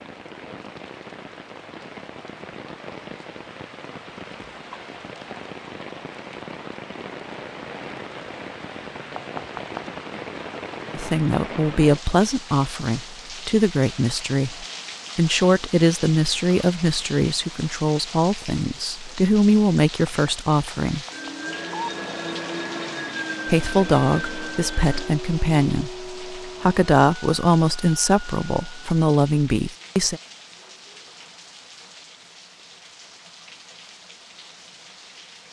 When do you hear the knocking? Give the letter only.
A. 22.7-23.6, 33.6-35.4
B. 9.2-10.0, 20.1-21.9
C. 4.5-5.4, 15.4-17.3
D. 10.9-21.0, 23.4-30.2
B.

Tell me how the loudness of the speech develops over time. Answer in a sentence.
The loudness of the speech stays about the same.